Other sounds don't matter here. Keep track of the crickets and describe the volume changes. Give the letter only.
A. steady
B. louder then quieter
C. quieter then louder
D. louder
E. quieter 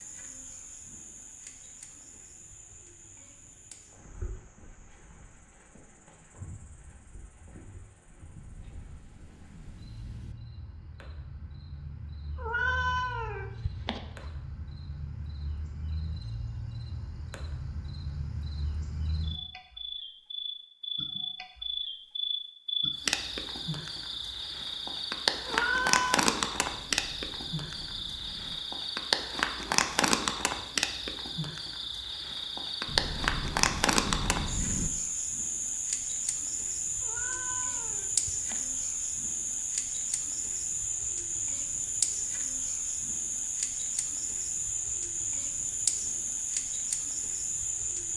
D.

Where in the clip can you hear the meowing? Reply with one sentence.
The meowing can be heard from 12.3 to 14.0 s, from 25.4 to 26.2 s and from 37.0 to 38.6 s.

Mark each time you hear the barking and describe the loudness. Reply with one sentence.
The barking can't be heard in this clip.